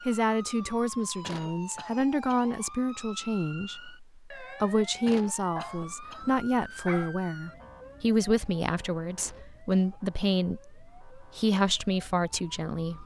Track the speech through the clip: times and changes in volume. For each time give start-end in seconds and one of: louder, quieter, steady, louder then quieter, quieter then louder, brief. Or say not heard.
0.1-13.0 steady.